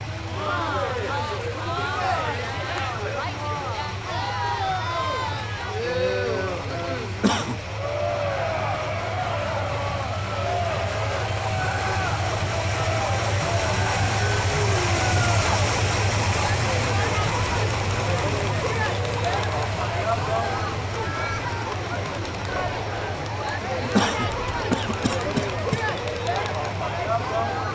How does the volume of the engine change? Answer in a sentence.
The volume of the engine goes up, then down.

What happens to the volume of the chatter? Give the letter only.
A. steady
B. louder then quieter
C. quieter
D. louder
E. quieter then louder
A.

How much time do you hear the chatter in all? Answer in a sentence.
You can hear the chatter for 28 seconds altogether.